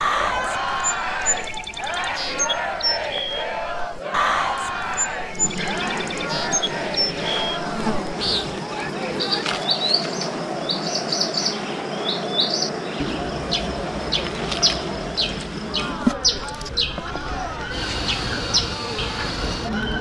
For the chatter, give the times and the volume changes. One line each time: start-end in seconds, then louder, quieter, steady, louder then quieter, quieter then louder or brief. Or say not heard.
0.0-19.9 quieter.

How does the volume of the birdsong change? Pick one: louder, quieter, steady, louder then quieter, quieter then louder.
steady.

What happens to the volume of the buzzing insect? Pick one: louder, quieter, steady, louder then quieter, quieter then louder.
louder.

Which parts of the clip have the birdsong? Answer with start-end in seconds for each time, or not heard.
0.0-19.9.